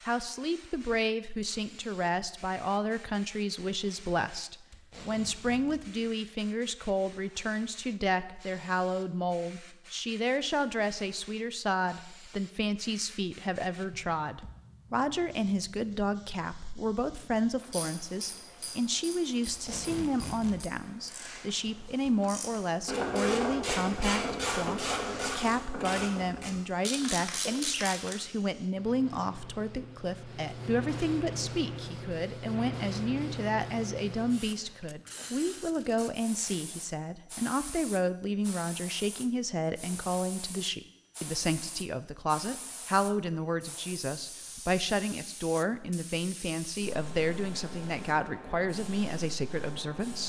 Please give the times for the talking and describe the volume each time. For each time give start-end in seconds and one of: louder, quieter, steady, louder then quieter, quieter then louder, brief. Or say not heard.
0.1-50.2 steady.